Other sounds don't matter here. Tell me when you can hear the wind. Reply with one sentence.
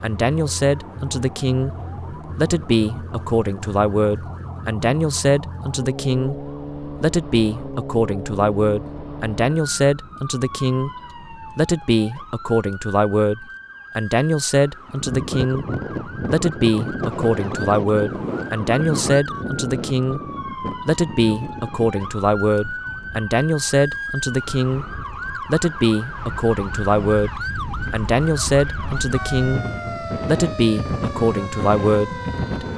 You can hear the wind from 14.9 to 32.7 s.